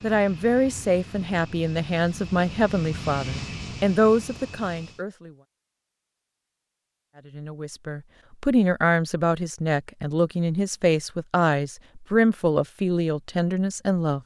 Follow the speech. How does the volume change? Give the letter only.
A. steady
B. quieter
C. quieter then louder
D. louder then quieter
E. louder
A.